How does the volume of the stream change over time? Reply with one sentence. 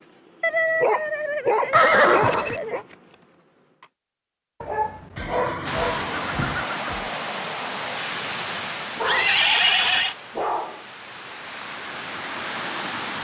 The volume of the stream goes down, then up.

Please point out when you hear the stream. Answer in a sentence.
The stream can be heard from 5.7 to 13.1 s.